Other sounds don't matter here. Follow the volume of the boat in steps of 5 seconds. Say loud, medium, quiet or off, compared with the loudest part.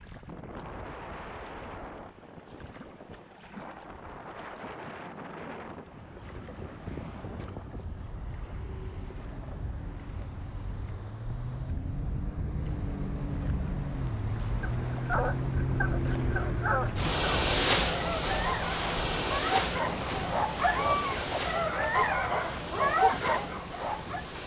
quiet, quiet, medium, loud, medium.